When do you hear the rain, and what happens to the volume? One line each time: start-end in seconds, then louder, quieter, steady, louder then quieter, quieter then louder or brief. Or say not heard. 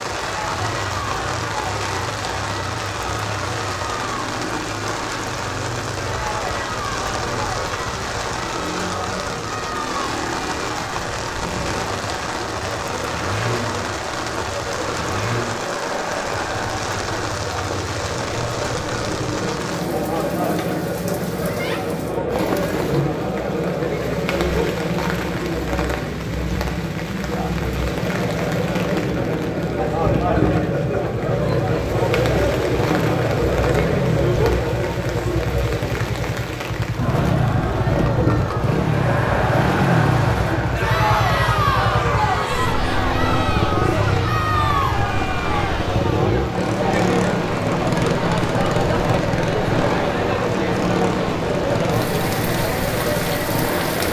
0.0-54.0 steady.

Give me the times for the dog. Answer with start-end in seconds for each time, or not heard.
not heard.